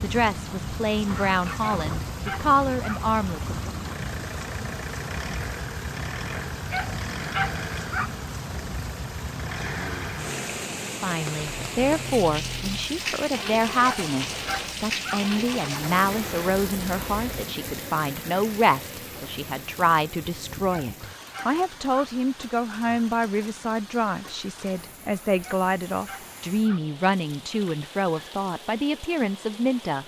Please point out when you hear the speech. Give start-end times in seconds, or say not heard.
0.0-3.7, 11.0-30.0.